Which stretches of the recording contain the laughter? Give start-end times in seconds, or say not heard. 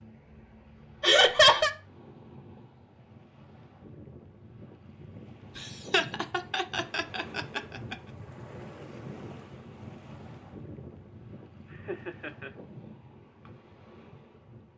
1.0-1.7, 5.5-8.0, 11.7-12.5.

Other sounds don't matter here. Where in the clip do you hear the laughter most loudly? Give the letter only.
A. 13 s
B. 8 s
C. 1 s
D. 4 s
C.